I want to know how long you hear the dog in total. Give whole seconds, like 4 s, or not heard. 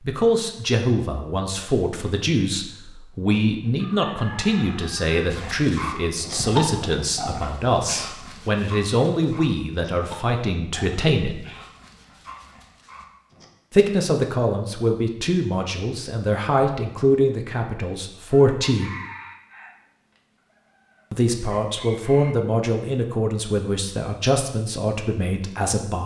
8 s.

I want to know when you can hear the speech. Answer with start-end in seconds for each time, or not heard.
0.0-11.4, 13.7-18.9, 21.1-26.0.